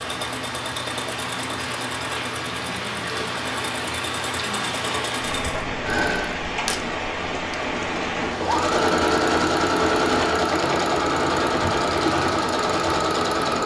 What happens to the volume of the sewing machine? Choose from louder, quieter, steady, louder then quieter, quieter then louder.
louder.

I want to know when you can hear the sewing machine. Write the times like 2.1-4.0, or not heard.
0.0-13.6.